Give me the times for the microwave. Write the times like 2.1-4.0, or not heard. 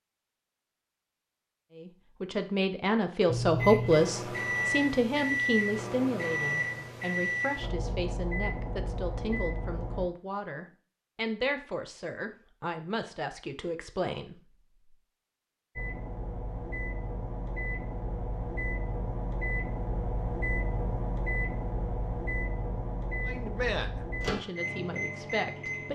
3.2-10.1, 15.8-25.9.